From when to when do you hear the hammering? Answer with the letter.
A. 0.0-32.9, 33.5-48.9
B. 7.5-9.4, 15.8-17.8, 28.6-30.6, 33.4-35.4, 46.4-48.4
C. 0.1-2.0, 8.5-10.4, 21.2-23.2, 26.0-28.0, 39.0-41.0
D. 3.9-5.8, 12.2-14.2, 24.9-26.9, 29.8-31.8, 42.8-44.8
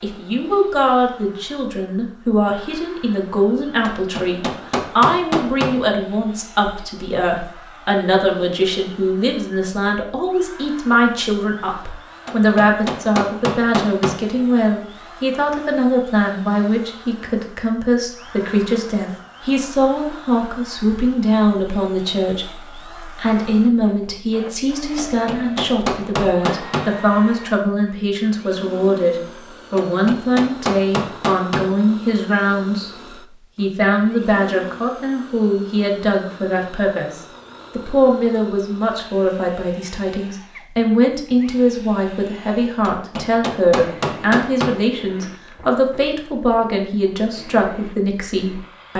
D.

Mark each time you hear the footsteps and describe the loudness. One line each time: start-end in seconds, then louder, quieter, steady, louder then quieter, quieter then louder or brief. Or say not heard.
not heard.